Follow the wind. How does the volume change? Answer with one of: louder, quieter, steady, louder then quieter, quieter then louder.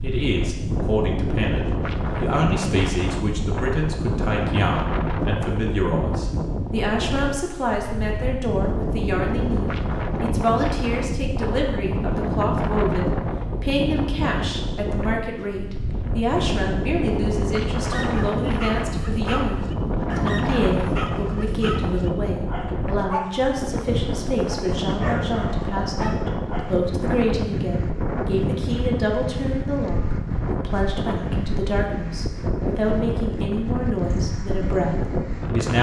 steady.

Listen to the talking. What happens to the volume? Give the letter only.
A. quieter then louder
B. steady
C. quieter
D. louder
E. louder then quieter
B.